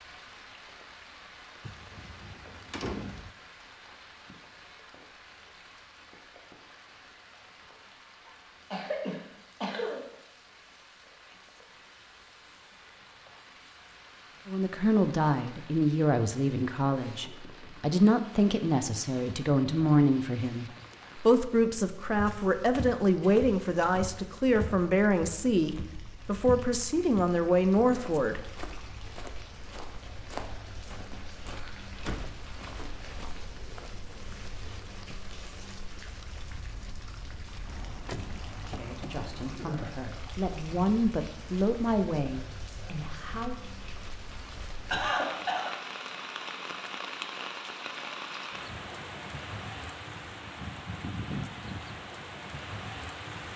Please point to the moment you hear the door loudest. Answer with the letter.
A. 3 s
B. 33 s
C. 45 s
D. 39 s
A.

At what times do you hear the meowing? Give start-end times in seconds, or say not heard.
not heard.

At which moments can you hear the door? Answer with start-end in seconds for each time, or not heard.
1.6-3.4, 31.5-33.0, 37.6-39.6.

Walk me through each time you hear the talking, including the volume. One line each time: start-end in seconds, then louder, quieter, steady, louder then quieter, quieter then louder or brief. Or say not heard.
14.4-28.5 steady
38.6-43.5 louder then quieter.